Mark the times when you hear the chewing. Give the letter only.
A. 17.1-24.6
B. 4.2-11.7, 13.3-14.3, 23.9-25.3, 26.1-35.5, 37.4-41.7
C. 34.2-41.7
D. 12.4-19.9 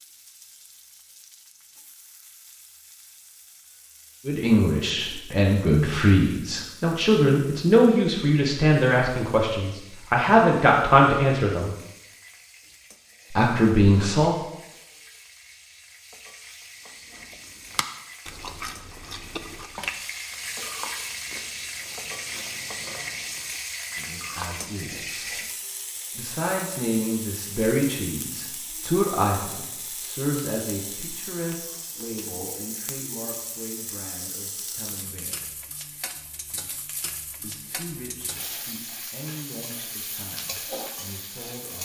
A.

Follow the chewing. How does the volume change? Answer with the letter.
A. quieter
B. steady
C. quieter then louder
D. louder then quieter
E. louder
A.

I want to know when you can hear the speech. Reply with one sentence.
You can hear the speech from 4.2 to 11.7 s, from 13.3 to 14.3 s, from 23.9 to 25.3 s, from 26.1 to 35.5 s and from 37.4 to 41.7 s.